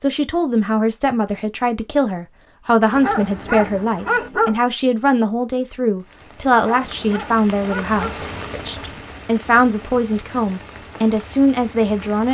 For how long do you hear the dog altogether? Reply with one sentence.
You can hear the dog for 3 seconds altogether.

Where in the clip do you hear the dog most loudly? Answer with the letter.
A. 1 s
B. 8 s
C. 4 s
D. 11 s
C.